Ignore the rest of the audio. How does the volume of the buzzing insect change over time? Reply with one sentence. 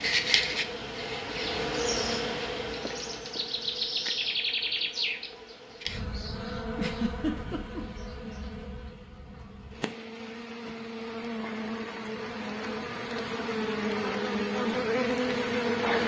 The loudness of the buzzing insect goes down, then up.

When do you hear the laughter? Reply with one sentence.
You can hear the laughter from 6.8 to 7.8 s.